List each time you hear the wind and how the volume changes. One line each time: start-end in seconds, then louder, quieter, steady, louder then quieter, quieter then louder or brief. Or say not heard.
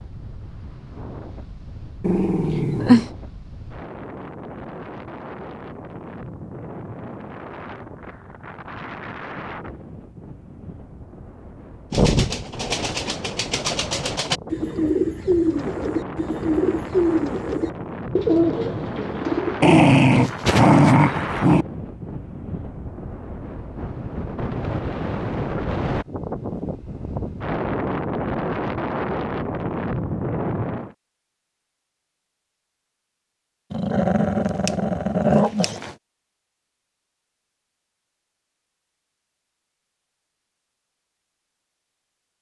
0.0-30.9 louder.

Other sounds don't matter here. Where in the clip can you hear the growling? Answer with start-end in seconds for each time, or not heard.
2.0-3.1, 19.6-21.6, 33.7-36.0.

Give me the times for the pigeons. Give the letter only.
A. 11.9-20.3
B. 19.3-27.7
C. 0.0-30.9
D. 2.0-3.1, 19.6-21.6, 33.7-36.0
A.